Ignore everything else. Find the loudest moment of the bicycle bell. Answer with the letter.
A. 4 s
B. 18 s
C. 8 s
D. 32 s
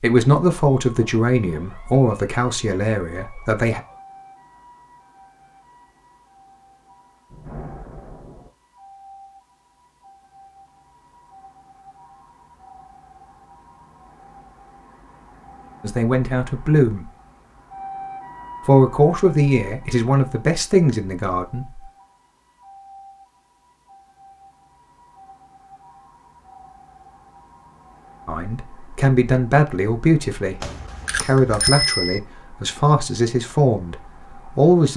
D.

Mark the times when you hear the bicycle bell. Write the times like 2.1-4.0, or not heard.
30.6-32.2.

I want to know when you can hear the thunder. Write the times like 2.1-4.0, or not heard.
7.3-8.5.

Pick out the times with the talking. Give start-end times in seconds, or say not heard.
0.0-3.8, 15.8-17.1, 18.6-21.8, 28.2-34.9.